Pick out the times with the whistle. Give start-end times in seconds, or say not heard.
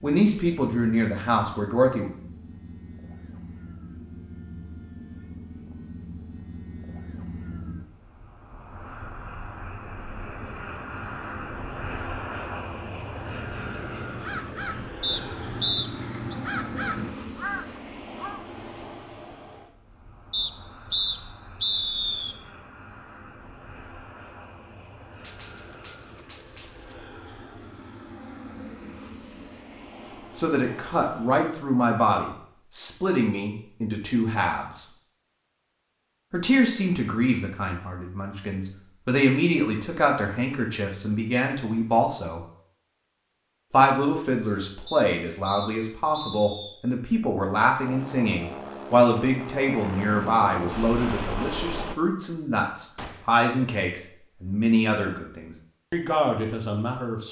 15.0-16.4, 20.3-22.4, 44.9-46.8.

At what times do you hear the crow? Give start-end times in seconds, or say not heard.
13.1-18.4.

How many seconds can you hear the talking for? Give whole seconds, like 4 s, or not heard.
26 s.